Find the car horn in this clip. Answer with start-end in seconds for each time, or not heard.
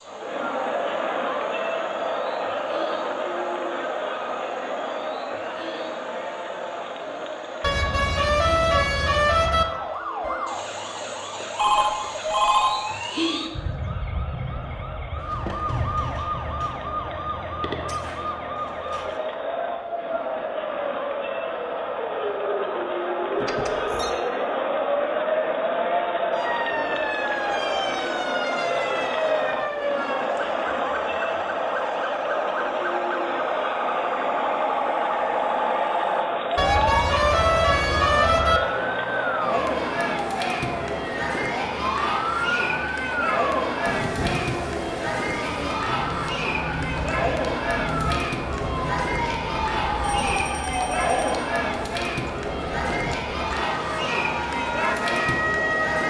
7.6-9.7, 36.5-38.6.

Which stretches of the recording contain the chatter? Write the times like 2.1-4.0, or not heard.
0.0-56.0.